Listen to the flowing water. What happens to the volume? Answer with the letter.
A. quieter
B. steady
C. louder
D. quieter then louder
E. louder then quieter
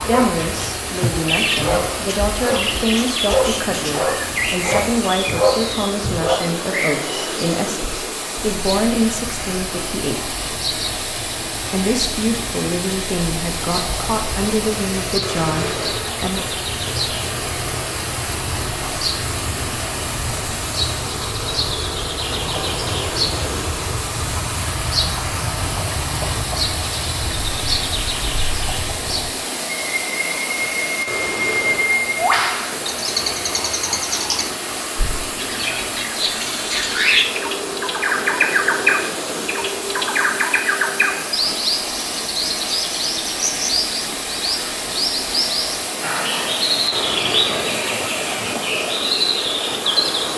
B.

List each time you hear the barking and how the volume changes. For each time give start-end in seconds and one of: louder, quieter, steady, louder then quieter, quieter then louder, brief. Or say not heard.
0.0-6.5 louder.